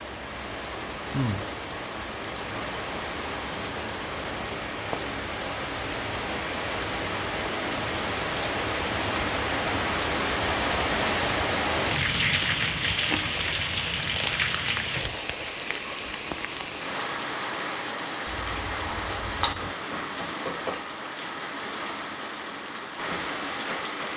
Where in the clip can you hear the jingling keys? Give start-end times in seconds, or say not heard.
18.2-19.7.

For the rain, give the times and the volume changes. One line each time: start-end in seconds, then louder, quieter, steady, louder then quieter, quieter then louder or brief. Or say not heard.
0.0-24.1 louder then quieter.